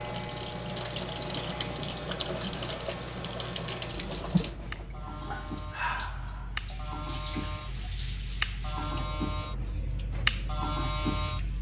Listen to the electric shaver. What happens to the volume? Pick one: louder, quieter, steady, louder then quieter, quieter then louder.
louder.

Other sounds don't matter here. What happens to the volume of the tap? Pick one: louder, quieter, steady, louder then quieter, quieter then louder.
quieter.